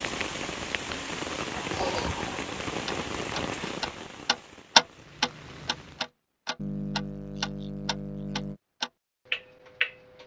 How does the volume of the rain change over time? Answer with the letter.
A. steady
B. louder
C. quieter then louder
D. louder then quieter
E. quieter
E.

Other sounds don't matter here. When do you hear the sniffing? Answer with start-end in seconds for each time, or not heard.
1.6-2.5, 6.5-8.6.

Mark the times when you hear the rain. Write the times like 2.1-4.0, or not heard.
0.0-6.1.